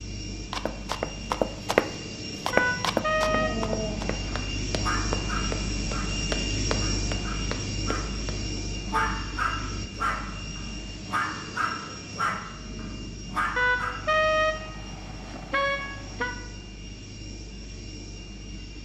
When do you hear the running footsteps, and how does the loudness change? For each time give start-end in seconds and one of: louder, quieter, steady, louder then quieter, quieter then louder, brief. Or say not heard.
0.5-8.4 quieter.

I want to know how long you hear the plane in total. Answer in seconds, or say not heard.
19 s.